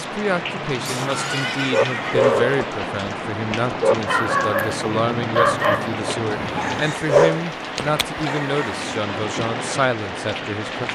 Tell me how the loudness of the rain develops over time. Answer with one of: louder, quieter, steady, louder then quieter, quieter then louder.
steady.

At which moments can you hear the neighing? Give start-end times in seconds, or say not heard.
0.8-2.4.